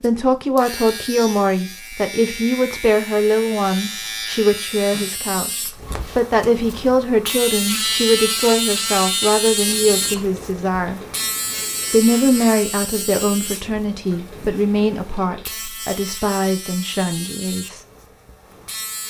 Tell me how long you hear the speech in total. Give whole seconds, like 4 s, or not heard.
17 s.